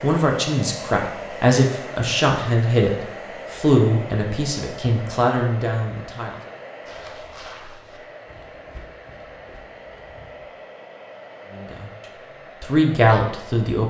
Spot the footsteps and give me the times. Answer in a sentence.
You can hear the footsteps from 6.8 to 10.6 s.